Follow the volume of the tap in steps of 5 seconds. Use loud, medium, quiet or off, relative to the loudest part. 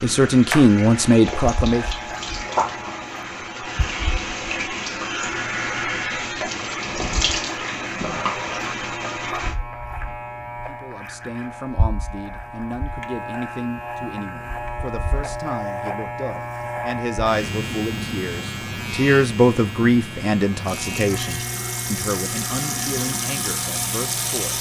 loud, loud, off, off, loud.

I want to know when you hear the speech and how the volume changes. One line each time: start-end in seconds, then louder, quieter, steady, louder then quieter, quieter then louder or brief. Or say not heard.
0.0-1.9 brief
10.7-24.5 louder then quieter.